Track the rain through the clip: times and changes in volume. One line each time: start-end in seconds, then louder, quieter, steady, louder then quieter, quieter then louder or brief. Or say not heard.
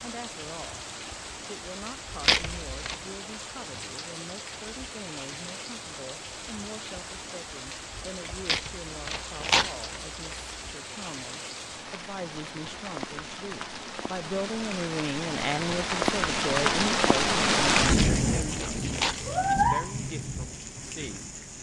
0.0-21.5 louder.